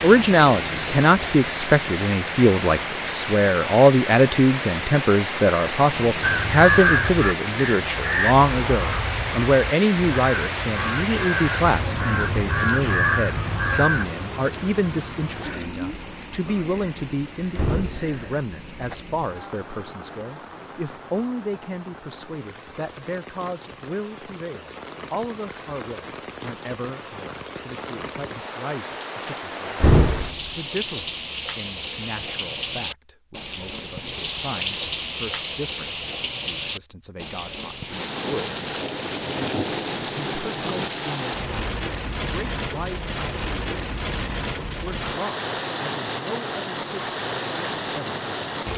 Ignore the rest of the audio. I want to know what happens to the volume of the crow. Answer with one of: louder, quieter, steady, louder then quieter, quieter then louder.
quieter then louder.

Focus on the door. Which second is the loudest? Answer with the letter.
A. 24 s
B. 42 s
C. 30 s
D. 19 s
C.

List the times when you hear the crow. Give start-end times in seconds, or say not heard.
6.2-14.1.